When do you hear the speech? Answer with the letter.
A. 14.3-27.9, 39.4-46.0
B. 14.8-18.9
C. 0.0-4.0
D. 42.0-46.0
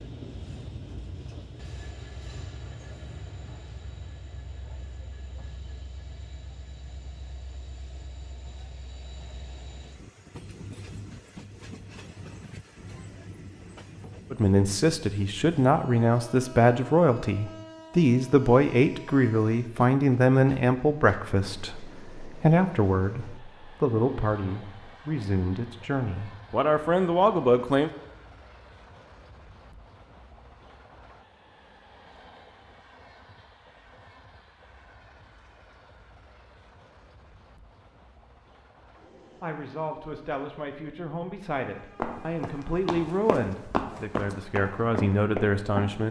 A.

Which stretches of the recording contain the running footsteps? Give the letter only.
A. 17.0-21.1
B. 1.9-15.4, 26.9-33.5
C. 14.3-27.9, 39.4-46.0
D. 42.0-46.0
D.